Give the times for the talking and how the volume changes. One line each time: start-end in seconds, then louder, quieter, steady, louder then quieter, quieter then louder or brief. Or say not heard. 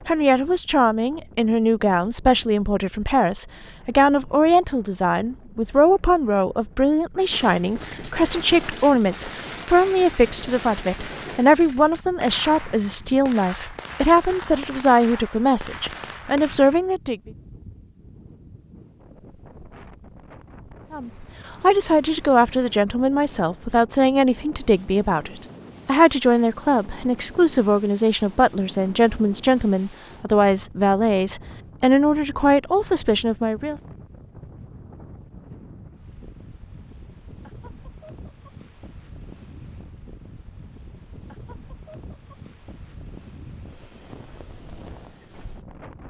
0.1-17.1 steady
20.9-33.8 steady.